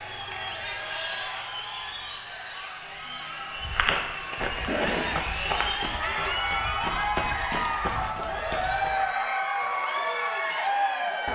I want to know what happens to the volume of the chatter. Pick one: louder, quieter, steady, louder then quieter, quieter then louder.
louder.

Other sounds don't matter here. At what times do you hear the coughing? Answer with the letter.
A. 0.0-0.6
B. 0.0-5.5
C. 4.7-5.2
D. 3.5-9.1
C.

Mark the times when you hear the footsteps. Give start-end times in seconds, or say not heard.
3.5-9.1.